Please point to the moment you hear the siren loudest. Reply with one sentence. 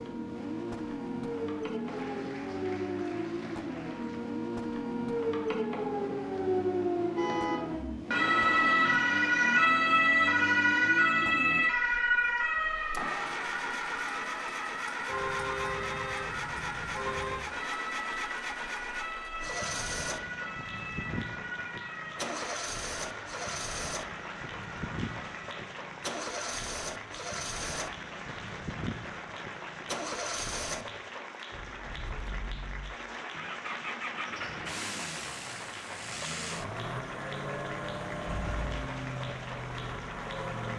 The volume of the siren peaks at 10 seconds.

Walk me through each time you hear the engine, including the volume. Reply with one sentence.
The engine can be heard from 0.0 to 40.7 s, at a steady volume.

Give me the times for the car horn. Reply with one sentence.
The car horn can be heard from 7.2 to 7.6 s, from 15.1 to 17.4 s and from 38.2 to 38.9 s.